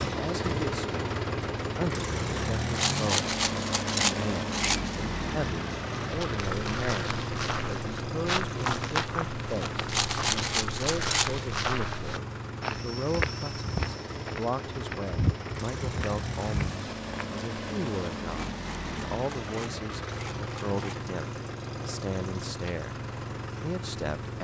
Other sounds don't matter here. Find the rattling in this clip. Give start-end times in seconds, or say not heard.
2.8-5.0, 9.8-11.4, 18.3-21.1.